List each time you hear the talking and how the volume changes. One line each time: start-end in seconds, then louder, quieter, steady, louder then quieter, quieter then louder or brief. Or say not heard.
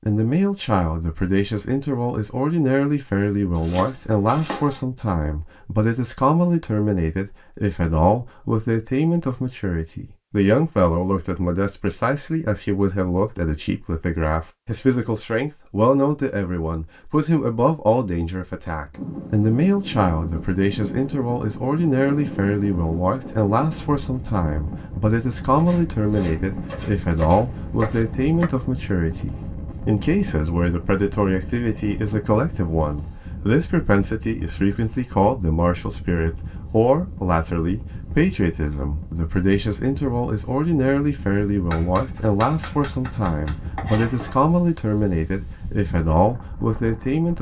0.1-47.3 steady.